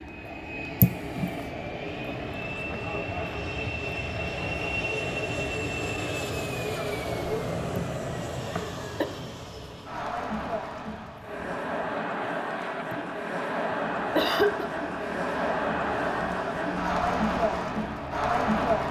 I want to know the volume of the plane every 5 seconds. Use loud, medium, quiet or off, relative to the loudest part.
loud, loud, quiet, medium.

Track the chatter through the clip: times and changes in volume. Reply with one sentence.
The chatter can be heard from 0.1 to 18.8 s, getting louder.